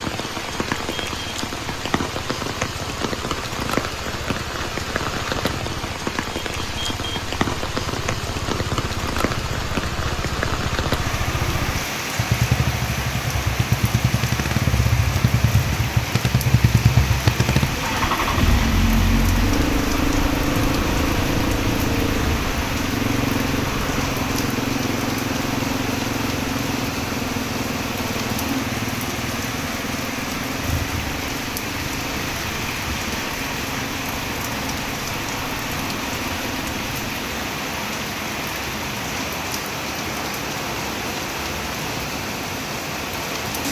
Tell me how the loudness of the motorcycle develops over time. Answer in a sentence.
The loudness of the motorcycle goes up, then down.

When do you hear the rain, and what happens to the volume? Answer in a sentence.
You can hear the rain from 0.0 to 43.6 s, at a steady volume.